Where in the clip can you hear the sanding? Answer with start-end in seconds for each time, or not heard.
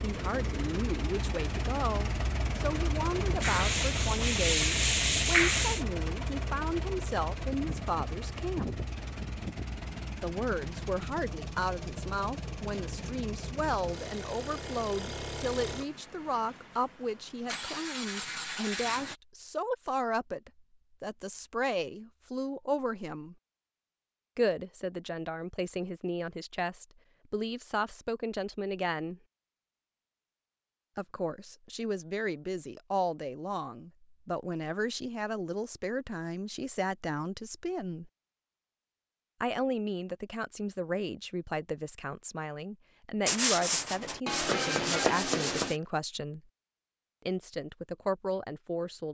3.4-5.8, 43.2-45.8.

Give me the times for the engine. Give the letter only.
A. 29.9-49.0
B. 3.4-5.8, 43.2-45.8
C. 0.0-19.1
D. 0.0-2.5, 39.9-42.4
C.